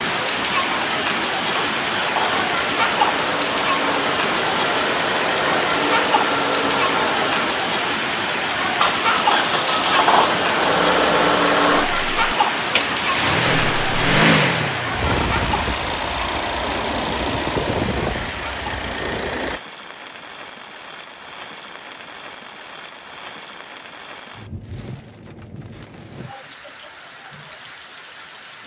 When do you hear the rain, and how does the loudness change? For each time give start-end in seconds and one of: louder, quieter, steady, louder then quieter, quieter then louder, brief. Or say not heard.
0.0-28.6 quieter.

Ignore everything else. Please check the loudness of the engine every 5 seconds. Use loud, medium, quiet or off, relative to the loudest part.
medium, loud, loud, medium, off, off.